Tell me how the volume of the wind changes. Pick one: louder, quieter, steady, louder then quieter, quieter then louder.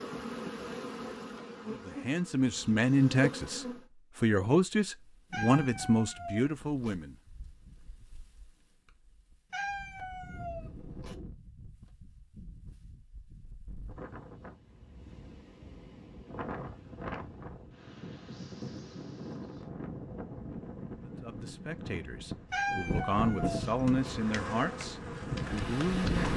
louder.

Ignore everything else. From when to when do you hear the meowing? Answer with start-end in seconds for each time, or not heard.
5.3-7.0, 9.5-11.2, 22.5-24.1.